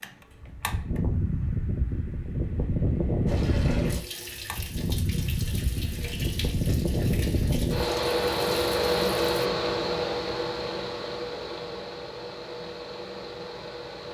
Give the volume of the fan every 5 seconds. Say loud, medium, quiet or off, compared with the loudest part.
loud, loud, medium.